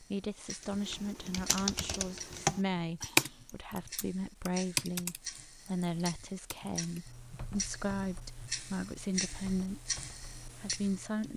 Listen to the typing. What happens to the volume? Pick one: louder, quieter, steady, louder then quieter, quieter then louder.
louder then quieter.